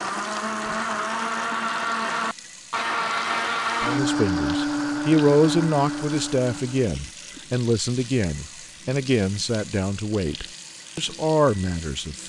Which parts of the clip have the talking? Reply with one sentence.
You can hear the talking from 3.8 to 12.2 s.